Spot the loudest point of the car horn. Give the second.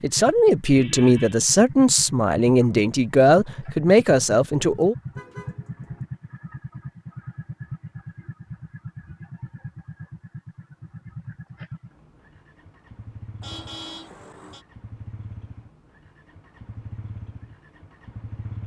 14 s.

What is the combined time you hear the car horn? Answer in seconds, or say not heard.
2 s.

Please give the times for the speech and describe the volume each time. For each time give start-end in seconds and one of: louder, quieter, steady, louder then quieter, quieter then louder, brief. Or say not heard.
0.0-5.0 steady.